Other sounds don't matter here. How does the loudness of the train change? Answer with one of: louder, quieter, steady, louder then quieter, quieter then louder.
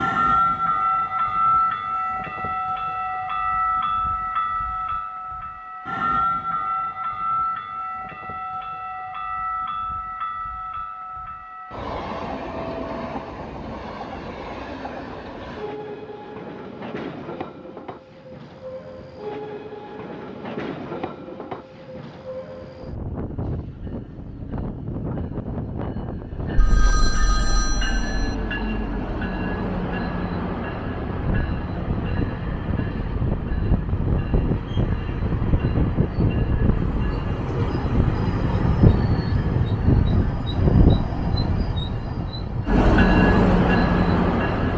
quieter then louder.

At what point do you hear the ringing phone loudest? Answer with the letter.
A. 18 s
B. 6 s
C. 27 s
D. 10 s
C.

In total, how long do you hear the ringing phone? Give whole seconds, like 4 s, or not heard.
2 s.